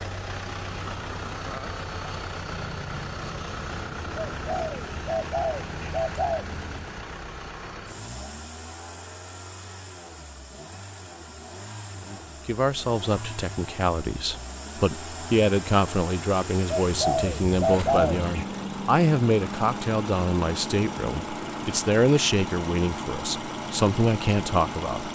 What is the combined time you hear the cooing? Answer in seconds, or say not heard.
4 s.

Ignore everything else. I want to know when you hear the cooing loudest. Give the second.
18 s.